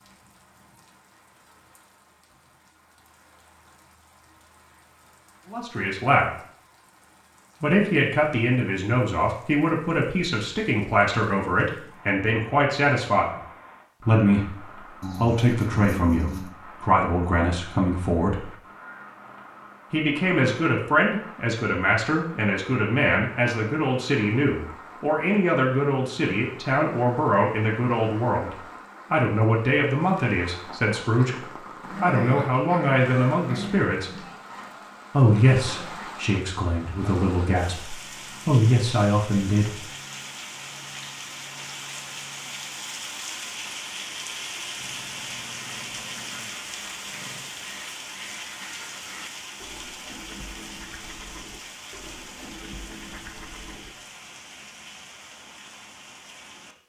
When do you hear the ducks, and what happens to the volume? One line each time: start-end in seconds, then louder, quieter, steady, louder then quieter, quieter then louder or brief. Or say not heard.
45.5-54.0 steady.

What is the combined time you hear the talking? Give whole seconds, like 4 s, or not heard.
30 s.